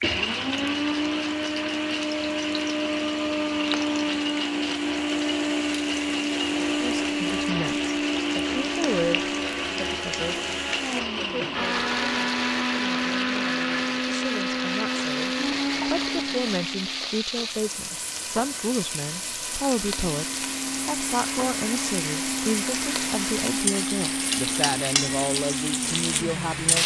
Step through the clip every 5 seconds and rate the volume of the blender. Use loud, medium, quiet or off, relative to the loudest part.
loud, loud, loud, loud, medium, medium.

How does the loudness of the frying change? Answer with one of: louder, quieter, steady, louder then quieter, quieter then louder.
louder.